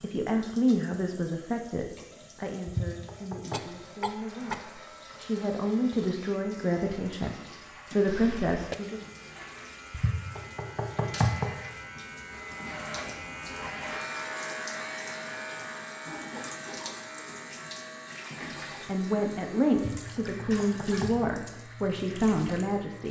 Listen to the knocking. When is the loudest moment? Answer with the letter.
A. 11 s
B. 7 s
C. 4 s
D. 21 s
A.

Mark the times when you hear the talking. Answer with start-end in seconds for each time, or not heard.
0.0-9.0, 18.4-23.0.